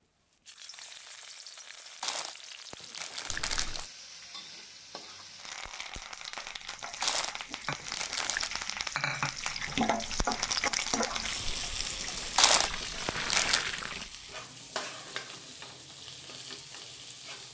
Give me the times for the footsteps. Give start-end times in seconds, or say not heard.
not heard.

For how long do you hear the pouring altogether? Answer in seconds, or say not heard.
3 s.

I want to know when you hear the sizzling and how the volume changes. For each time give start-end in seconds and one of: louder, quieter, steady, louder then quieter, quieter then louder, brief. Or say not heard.
0.0-17.4 louder then quieter.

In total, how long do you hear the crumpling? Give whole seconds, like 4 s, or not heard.
5 s.